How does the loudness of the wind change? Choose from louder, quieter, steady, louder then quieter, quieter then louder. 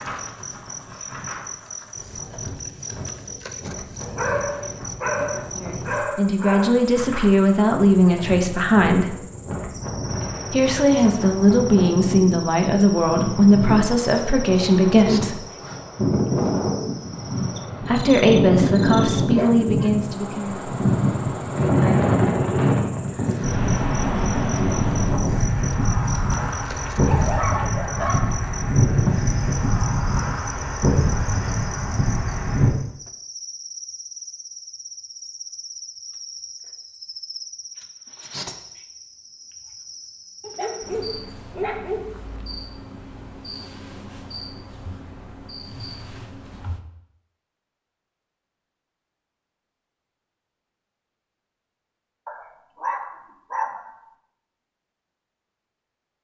louder.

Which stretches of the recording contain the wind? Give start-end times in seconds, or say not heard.
0.0-32.8.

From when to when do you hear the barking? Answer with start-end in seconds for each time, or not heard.
4.0-6.8, 19.2-19.9, 26.4-28.4, 40.4-42.4, 52.2-54.0.